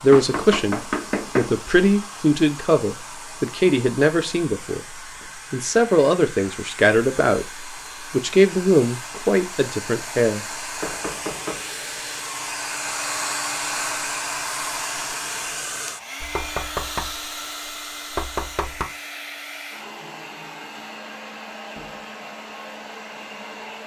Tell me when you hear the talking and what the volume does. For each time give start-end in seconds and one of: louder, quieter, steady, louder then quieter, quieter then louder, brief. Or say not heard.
0.0-10.6 steady.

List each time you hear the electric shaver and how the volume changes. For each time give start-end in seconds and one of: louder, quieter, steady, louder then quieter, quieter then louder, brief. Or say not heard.
not heard.